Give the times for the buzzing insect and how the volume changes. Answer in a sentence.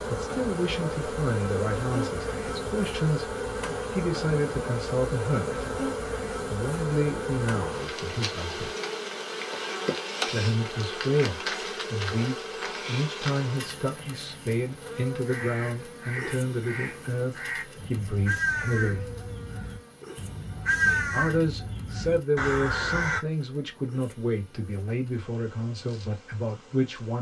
The buzzing insect can be heard from 0.0 to 27.1 s, getting quieter.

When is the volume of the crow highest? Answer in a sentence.
The loudest moment of the crow is at 21 seconds.